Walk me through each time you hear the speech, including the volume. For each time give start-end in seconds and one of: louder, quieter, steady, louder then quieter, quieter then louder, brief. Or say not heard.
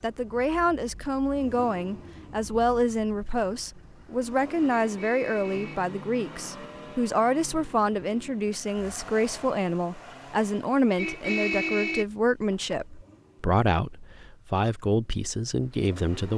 0.0-16.3 steady.